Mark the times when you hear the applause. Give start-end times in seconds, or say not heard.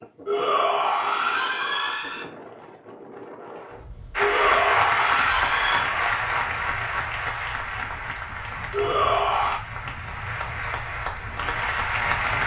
4.2-12.4.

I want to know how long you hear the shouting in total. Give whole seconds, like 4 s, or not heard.
5 s.